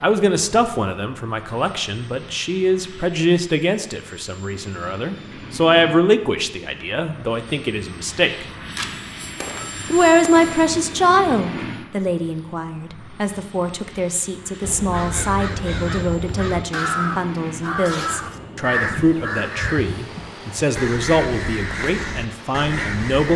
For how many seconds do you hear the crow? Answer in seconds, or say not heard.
9 s.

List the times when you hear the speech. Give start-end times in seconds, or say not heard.
0.0-8.4, 9.9-23.3.